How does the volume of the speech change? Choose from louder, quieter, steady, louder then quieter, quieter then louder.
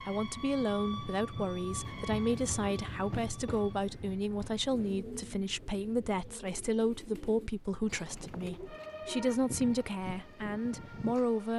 steady.